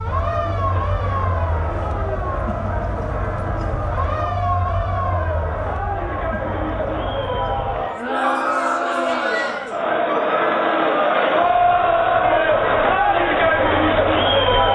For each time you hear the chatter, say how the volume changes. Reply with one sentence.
You can hear the chatter from 0.0 to 14.6 s, getting louder.